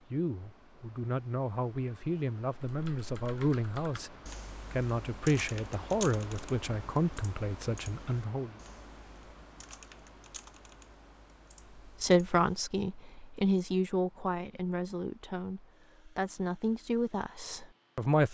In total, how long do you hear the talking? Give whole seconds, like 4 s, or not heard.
15 s.